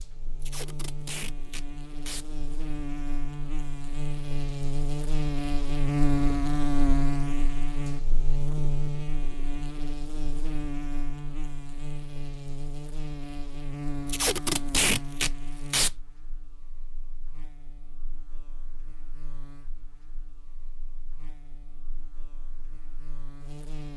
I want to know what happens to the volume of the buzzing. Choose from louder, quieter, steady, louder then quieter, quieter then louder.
louder then quieter.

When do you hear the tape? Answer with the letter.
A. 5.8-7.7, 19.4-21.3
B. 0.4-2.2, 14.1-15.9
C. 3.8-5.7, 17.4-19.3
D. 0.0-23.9
B.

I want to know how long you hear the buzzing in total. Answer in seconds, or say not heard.
24 s.